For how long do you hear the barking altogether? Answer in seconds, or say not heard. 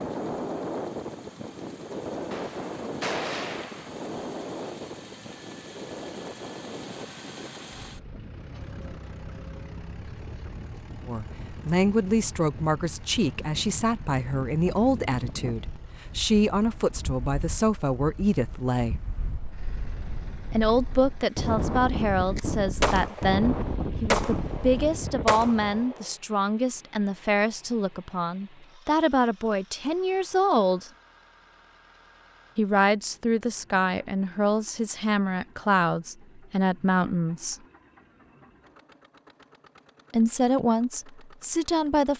not heard.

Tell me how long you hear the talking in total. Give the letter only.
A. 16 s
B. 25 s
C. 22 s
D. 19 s
B.